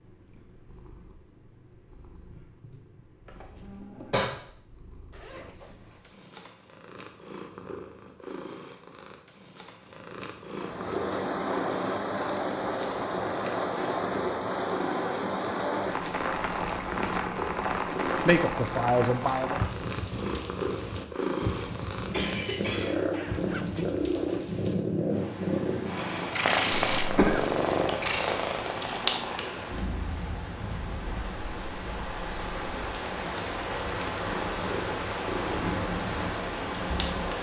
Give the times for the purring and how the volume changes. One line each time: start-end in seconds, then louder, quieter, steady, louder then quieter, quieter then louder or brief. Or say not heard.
0.0-37.3 louder then quieter.